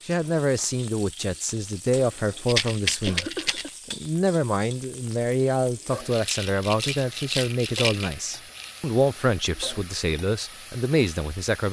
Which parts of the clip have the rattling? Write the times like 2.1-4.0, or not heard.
2.5-3.7, 6.1-8.8.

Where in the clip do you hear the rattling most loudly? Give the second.
3 s.